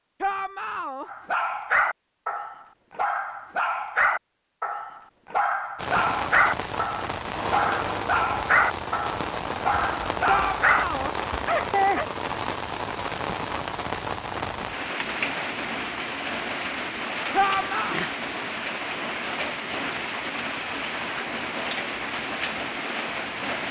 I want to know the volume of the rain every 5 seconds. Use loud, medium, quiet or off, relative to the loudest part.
off, loud, loud, loud, loud.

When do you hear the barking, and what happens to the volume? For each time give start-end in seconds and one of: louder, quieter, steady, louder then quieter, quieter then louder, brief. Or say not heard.
1.1-10.8 steady
11.4-12.1 brief.